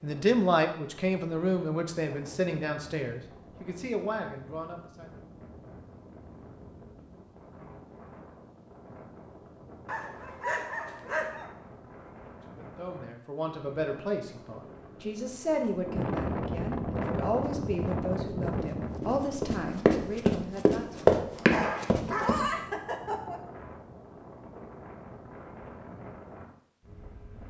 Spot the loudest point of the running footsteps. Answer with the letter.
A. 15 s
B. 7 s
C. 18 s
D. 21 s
D.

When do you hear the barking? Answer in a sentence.
You can hear the barking from 9.8 to 11.5 s and from 21.5 to 23.4 s.